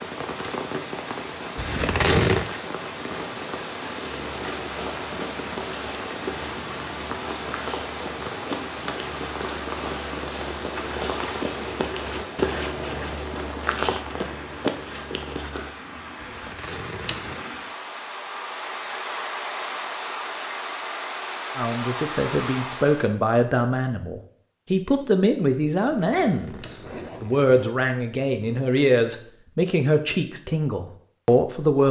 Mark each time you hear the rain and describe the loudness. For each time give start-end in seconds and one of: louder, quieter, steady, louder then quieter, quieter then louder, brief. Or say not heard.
0.0-23.1 quieter then louder.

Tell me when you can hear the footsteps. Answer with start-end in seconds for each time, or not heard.
4.0-15.8.